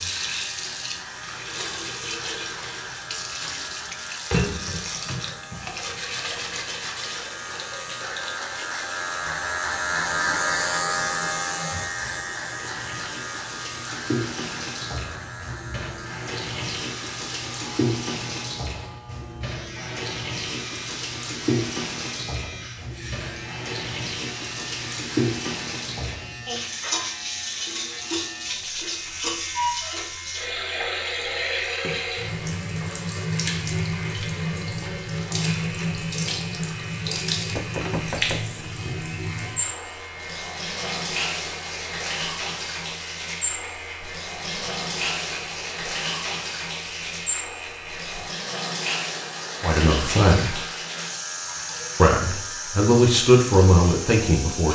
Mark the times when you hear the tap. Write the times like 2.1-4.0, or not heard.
0.0-54.7.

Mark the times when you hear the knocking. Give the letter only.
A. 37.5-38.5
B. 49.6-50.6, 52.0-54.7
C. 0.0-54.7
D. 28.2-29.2
A.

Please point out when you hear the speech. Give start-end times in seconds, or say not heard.
49.6-50.6, 52.0-54.7.